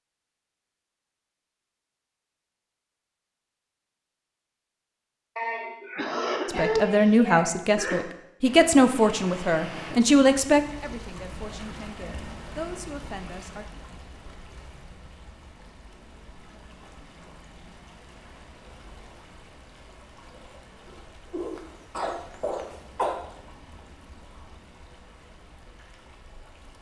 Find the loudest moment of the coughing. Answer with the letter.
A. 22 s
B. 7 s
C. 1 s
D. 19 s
B.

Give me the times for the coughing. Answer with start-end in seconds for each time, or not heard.
5.3-8.1, 21.3-23.1.